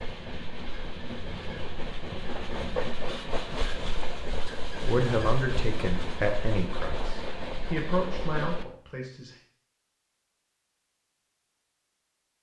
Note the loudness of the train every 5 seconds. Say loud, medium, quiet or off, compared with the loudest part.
loud, loud, off.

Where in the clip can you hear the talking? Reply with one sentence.
The talking can be heard from 4.8 to 9.3 s.